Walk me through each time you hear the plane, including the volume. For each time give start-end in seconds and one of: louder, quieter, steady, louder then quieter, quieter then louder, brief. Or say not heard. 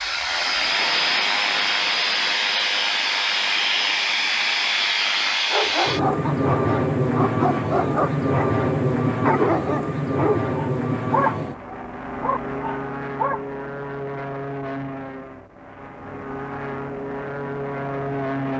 0.0-18.5 quieter.